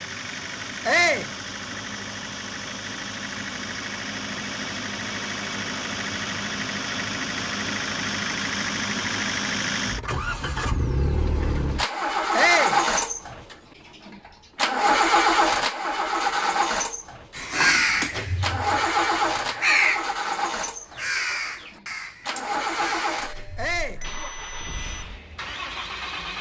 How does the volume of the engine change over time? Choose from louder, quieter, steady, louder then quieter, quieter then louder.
louder then quieter.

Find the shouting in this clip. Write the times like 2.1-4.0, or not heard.
0.8-1.3, 12.3-12.8, 23.6-24.1.